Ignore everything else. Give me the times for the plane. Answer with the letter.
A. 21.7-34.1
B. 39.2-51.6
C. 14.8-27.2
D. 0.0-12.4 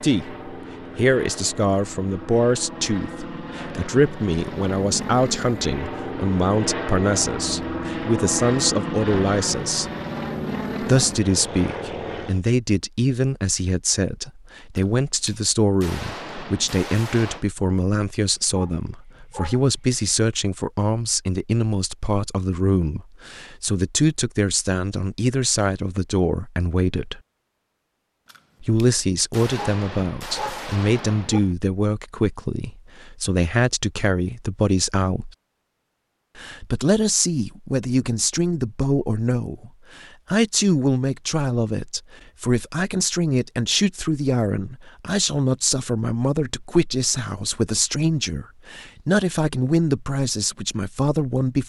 D.